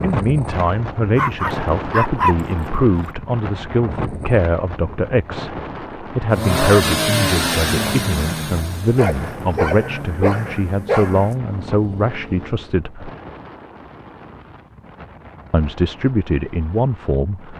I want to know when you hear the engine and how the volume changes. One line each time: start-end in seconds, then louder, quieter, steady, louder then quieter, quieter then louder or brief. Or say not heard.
6.3-12.7 quieter.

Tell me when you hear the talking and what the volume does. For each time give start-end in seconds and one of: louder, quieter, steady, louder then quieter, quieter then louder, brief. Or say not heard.
0.0-13.1 steady
15.5-17.5 brief.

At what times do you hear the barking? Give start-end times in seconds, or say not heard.
1.1-3.1, 8.9-11.3.